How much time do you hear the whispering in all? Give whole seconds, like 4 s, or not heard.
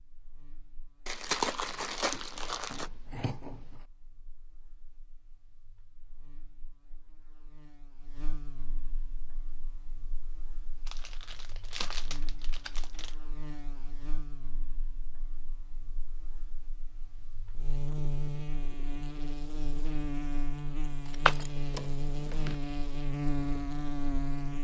not heard.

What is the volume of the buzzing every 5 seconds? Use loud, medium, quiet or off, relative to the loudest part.
quiet, quiet, quiet, medium, loud.